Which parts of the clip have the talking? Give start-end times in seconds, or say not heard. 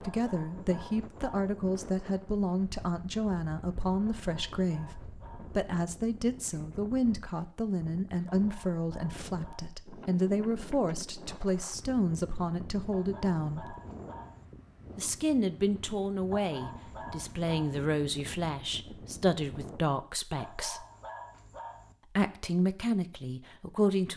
0.0-13.8, 14.9-20.9, 22.1-24.1.